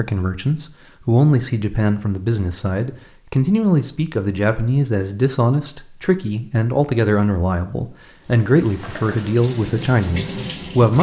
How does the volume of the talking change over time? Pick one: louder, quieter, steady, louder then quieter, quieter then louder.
steady.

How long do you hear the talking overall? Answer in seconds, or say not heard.
11 s.